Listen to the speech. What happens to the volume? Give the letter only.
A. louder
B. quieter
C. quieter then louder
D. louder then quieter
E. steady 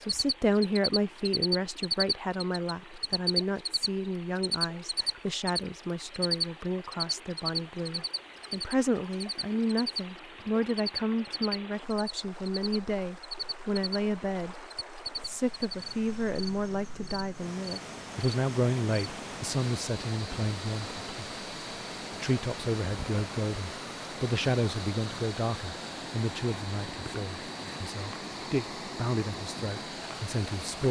E.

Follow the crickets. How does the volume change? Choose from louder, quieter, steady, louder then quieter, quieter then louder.
quieter.